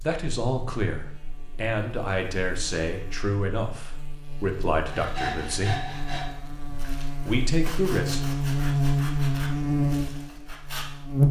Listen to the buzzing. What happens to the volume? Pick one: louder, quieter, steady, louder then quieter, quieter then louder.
louder.